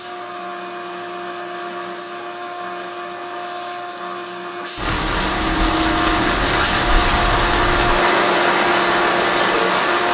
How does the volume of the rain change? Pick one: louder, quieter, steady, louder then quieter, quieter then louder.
steady.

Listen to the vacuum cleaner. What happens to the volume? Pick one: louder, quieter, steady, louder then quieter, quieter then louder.
louder.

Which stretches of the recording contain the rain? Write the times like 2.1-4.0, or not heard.
4.8-10.0.